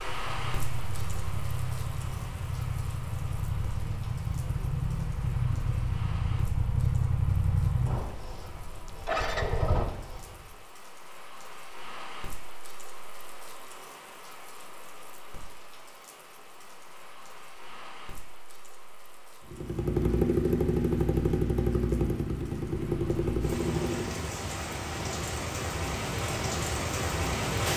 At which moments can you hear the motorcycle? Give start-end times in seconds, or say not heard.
0.0-10.7, 19.4-24.4.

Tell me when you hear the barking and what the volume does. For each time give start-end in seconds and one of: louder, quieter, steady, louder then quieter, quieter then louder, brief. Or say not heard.
not heard.